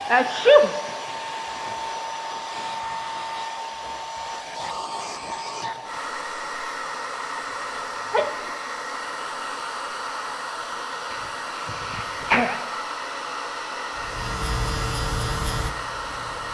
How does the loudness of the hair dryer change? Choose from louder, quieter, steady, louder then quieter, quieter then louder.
steady.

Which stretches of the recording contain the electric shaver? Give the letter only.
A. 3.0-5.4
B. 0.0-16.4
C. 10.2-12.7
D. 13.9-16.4
D.